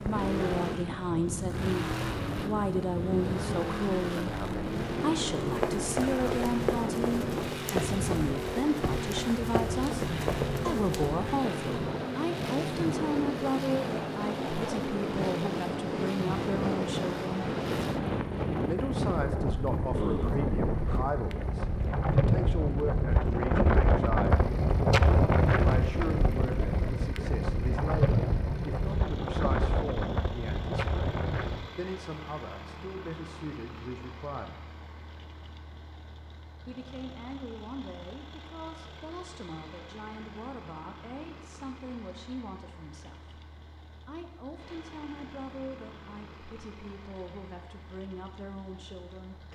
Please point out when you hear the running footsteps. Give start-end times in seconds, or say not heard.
5.4-11.2.